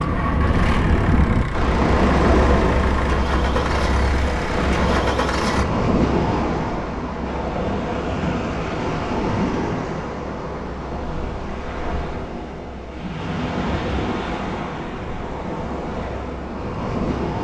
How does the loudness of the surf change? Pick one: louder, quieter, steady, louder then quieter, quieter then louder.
quieter.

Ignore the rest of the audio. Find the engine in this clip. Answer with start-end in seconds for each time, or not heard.
0.0-5.7.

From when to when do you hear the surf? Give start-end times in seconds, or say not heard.
0.0-17.3.